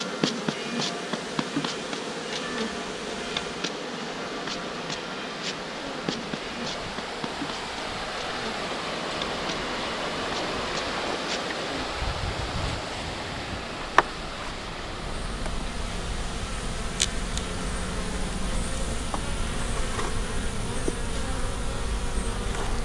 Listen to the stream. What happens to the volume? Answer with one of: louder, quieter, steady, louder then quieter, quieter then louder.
louder then quieter.